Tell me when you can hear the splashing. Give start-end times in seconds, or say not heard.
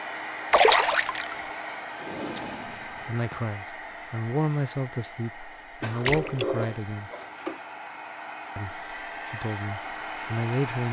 0.5-1.4, 6.0-6.5.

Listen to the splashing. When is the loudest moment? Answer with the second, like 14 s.
1 s.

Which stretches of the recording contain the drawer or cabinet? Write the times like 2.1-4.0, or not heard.
1.9-3.4, 5.8-7.6.